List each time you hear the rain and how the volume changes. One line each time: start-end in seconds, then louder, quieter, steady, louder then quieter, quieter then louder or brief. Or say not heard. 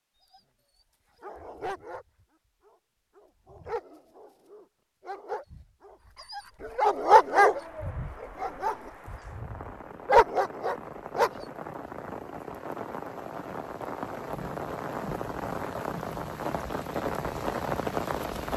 7.0-18.5 louder.